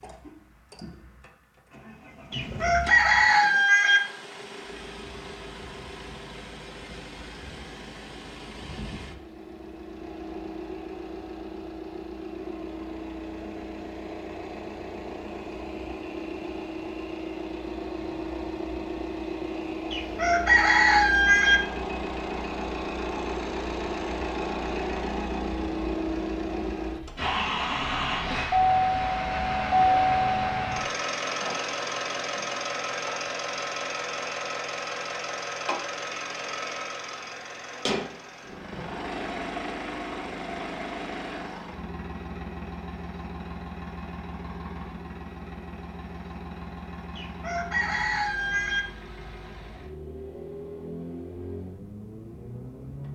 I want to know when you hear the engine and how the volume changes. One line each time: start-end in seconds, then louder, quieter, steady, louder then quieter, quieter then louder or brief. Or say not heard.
0.0-53.1 louder then quieter.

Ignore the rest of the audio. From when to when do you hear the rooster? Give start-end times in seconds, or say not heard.
2.3-4.0, 19.9-21.6, 47.1-48.8.